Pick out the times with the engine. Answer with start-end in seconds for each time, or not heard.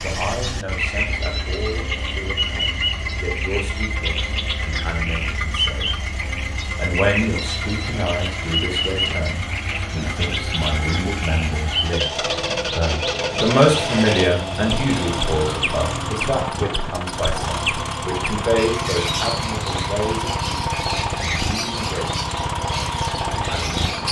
0.0-24.0.